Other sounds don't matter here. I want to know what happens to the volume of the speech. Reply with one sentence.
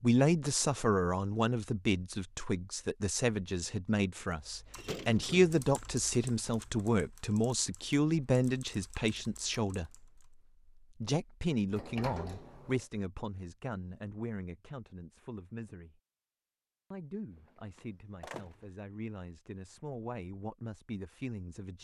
The loudness of the speech goes down.